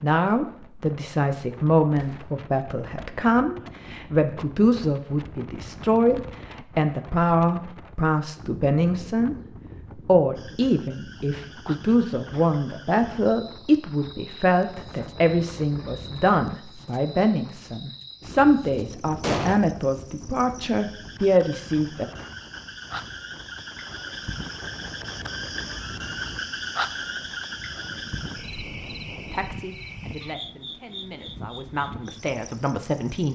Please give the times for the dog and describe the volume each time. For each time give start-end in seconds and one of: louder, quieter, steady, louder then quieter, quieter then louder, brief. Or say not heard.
not heard.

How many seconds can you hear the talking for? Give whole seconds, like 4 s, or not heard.
25 s.